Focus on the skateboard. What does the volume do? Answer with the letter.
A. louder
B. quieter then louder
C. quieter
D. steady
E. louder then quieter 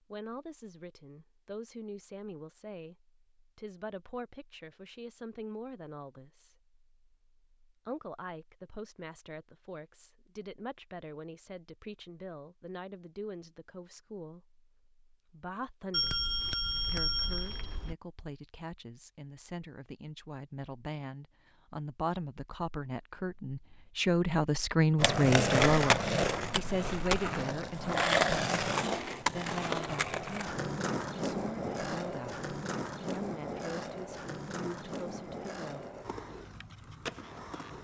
C.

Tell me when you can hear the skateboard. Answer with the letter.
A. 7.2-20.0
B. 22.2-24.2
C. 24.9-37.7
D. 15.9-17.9
C.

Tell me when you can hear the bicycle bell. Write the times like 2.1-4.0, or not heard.
15.9-17.9.